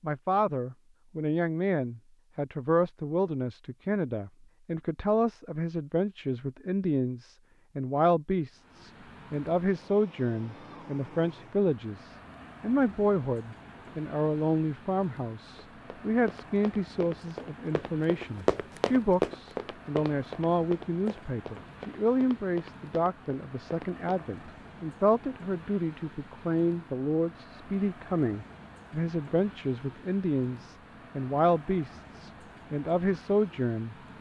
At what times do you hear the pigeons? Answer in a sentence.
The pigeons can't be heard in this clip.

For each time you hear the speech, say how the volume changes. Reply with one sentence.
You can hear the speech from 0.0 to 34.0 s, at a steady volume.